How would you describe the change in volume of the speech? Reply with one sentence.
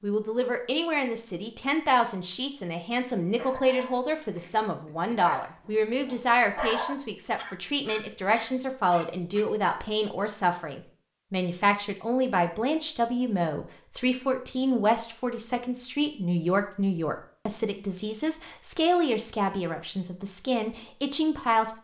The loudness of the speech stays about the same.